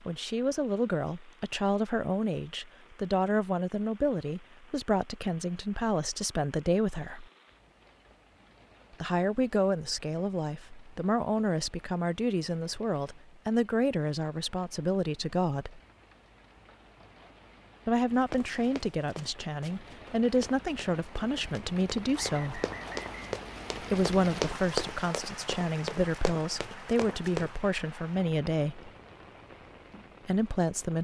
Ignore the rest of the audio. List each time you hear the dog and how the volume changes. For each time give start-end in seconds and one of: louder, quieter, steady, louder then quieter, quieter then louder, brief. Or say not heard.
not heard.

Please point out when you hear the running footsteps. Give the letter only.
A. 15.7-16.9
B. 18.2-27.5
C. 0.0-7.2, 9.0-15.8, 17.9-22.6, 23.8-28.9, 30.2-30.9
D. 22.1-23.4
B.